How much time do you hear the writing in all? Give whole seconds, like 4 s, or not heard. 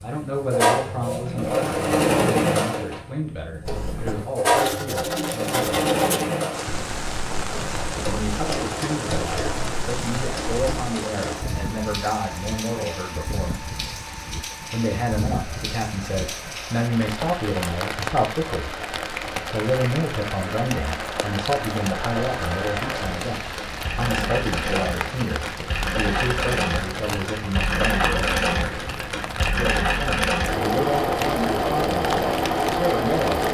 7 s.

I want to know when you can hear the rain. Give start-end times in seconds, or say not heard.
6.5-33.4.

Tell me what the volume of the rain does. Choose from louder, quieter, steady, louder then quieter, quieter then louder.
steady.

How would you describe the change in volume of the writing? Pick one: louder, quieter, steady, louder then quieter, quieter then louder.
quieter.